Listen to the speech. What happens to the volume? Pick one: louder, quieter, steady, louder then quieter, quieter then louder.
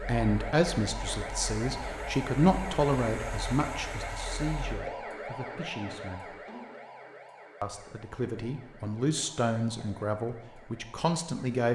quieter then louder.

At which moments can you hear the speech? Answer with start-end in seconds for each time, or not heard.
0.0-6.4, 7.6-11.7.